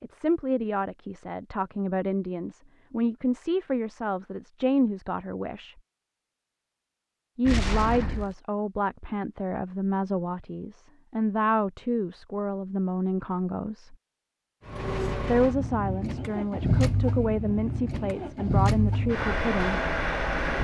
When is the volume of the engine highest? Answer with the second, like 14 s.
19 s.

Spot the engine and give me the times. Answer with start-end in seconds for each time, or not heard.
14.7-20.5.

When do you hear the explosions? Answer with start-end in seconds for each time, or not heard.
7.5-8.3.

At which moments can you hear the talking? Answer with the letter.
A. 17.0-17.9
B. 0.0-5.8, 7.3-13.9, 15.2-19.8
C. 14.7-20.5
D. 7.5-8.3
B.